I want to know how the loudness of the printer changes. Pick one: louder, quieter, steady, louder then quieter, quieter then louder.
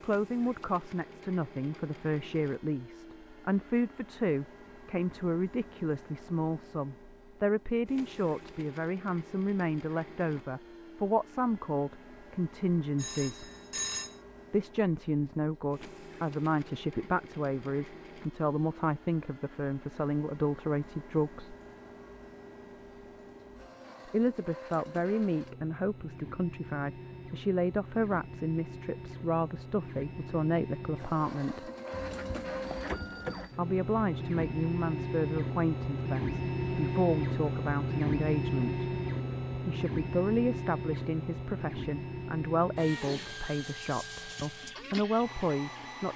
louder.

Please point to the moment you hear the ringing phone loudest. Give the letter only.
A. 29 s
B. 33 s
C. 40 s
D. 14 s
D.